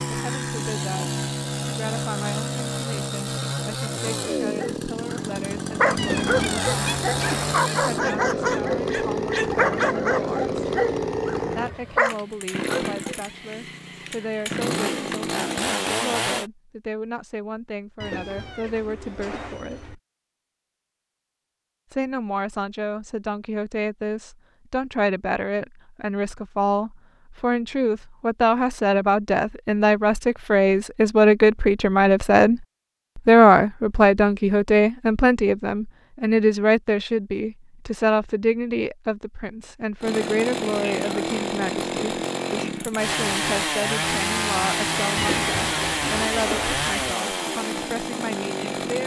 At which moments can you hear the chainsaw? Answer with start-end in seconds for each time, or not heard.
0.0-16.5, 40.0-49.0.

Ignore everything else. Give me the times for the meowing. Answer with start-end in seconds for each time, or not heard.
6.0-7.6, 18.0-19.9, 45.1-47.1.